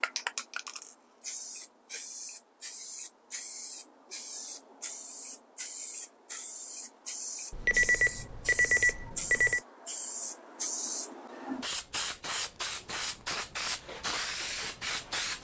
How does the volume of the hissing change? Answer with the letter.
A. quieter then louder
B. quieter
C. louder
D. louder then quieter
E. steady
C.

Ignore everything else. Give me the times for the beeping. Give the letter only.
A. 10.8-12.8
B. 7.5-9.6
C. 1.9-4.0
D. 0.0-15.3
B.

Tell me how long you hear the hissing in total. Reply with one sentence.
You can hear the hissing for 15 seconds altogether.